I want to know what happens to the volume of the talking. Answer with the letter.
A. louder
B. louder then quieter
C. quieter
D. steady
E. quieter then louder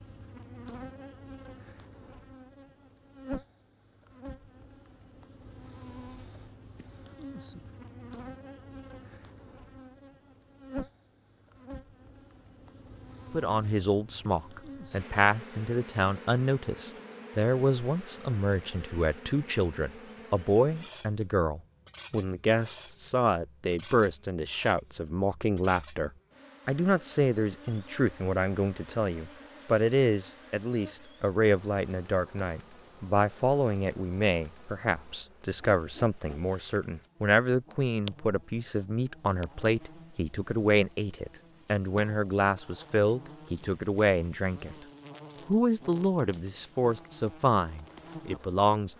D.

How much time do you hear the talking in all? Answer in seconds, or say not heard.
35 s.